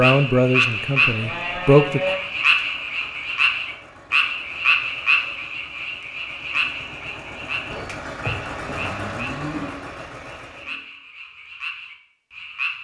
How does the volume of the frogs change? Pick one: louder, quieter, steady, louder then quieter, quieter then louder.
quieter.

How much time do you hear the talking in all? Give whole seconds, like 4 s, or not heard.
2 s.